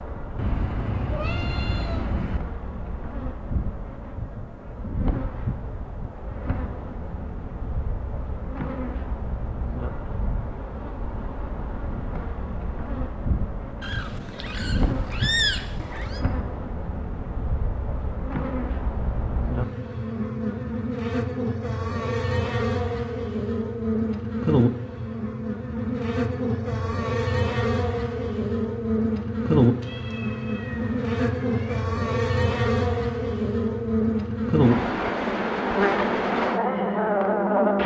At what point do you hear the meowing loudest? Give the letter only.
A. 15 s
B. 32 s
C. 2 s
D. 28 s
A.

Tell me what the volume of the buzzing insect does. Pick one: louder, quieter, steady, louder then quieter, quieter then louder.
louder.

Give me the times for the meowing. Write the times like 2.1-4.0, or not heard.
0.3-2.4, 13.8-16.2, 29.8-31.9.